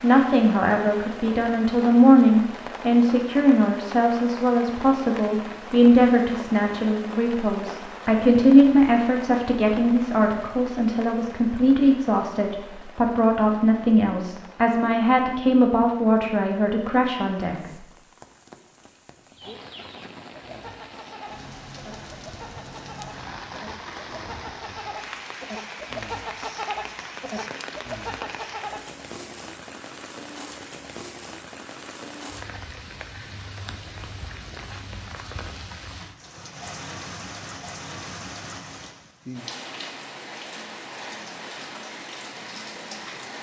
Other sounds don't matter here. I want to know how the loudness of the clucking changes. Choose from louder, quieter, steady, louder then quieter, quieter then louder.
louder.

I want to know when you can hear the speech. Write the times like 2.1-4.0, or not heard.
0.0-17.6.